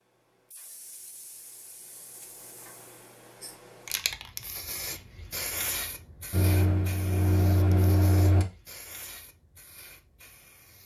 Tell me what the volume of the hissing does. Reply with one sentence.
The volume of the hissing goes up, then down.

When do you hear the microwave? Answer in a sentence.
You can hear the microwave from 6.3 to 8.4 s.